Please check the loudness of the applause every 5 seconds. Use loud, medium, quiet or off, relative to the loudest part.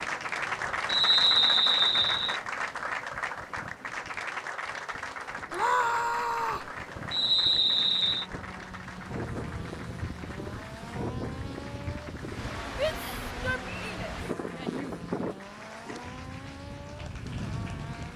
loud, medium, quiet, quiet.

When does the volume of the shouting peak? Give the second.
6 s.